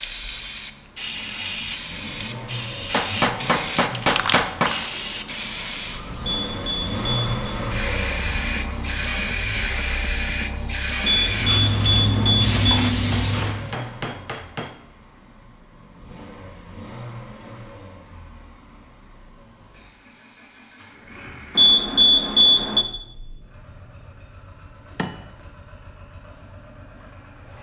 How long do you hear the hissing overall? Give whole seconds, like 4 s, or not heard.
14 s.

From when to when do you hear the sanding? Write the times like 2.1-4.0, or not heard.
not heard.